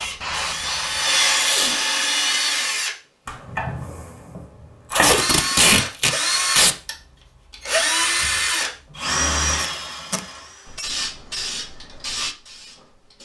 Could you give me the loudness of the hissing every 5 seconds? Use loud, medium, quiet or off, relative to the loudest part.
loud, off, loud.